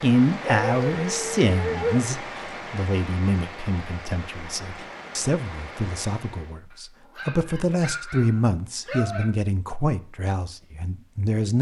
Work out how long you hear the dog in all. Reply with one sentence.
You can hear the dog for 4 seconds altogether.